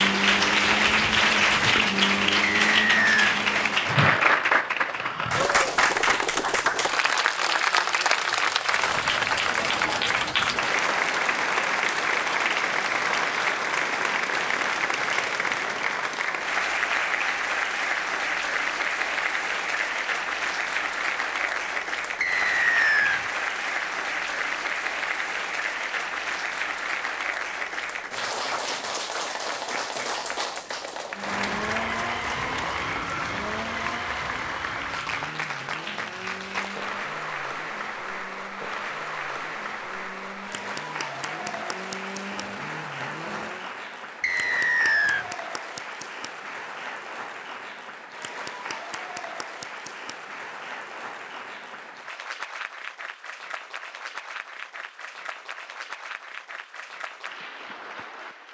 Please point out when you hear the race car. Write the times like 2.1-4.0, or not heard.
0.0-3.9, 31.1-43.7.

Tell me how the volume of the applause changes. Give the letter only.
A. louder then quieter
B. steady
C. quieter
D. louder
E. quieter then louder
C.